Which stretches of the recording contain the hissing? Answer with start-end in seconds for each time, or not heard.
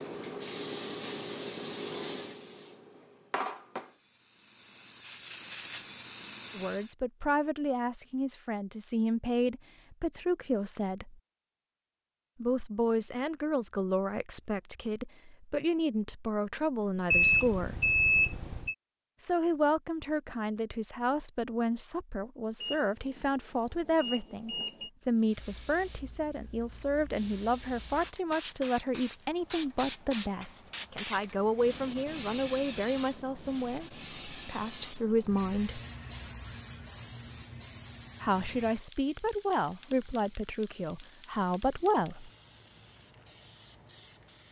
0.0-7.0, 25.1-44.4.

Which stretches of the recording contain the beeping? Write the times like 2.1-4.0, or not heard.
17.1-18.8, 22.6-24.9.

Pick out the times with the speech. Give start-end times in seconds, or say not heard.
6.5-11.2, 12.4-17.9, 19.2-35.8, 38.2-42.3.